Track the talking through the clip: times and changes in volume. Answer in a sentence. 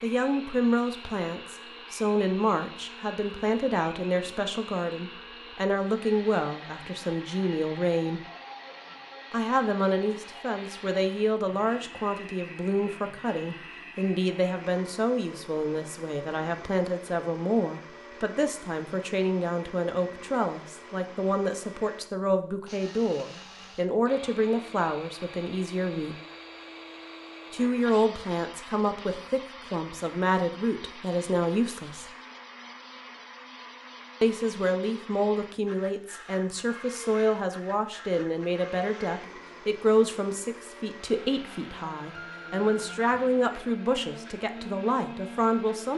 The talking can be heard from 0.0 to 8.2 s, at a steady volume; from 9.3 to 26.1 s, at a steady volume; from 27.5 to 32.0 s, getting quieter then louder; and from 34.2 to 45.9 s, at a steady volume.